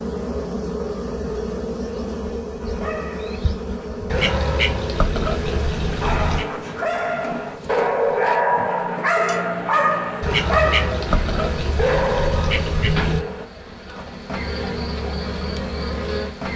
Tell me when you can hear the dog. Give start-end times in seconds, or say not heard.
2.6-13.5.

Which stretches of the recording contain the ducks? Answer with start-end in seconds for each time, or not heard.
4.0-6.5, 10.2-13.2.